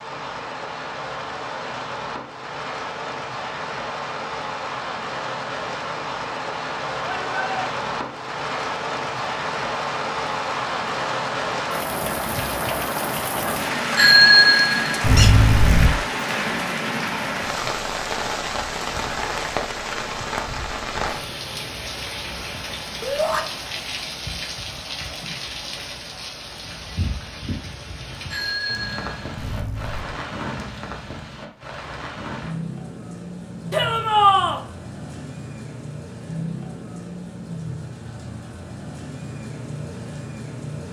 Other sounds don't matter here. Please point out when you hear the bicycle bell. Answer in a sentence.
The bicycle bell can be heard from 13.9 to 15.9 s and from 28.3 to 30.1 s.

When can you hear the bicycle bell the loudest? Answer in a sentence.
The loudest moment of the bicycle bell is at 14 seconds.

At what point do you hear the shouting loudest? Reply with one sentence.
The loudest moment of the shouting is at 34 seconds.